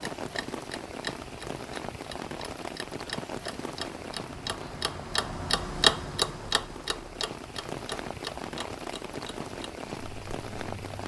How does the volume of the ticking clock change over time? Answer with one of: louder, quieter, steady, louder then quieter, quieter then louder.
louder then quieter.